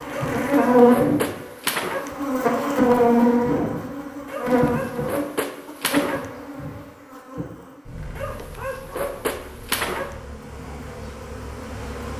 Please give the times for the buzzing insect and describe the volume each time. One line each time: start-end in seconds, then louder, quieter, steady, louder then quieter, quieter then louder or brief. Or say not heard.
0.0-12.1 quieter.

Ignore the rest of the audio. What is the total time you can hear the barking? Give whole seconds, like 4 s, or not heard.
6 s.